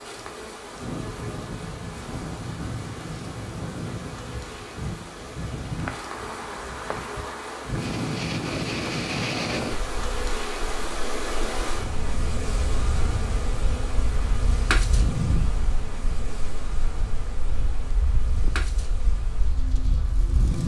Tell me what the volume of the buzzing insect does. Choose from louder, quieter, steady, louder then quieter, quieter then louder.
louder then quieter.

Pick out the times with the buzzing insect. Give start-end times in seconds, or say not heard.
0.0-20.6.